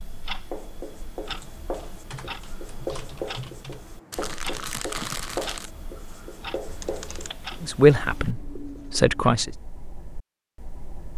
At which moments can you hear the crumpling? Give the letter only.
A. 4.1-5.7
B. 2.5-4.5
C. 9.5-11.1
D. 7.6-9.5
A.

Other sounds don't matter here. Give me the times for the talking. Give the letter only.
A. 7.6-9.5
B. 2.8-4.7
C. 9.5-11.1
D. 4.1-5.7
A.